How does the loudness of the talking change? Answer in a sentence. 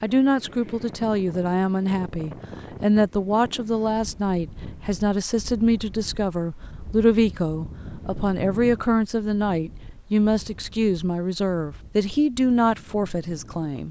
The loudness of the talking stays about the same.